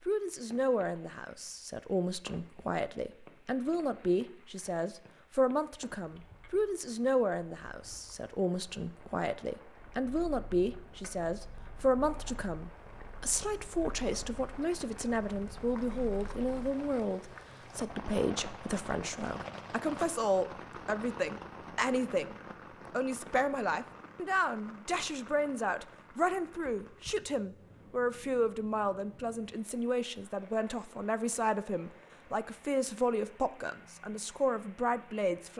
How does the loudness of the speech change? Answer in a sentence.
The volume of the speech stays about the same.